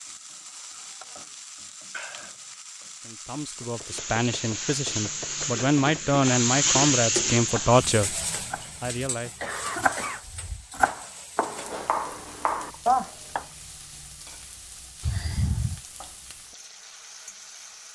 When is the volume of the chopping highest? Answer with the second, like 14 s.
13 s.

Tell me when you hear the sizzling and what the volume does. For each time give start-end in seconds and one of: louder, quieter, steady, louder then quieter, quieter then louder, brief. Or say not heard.
0.0-17.9 louder then quieter.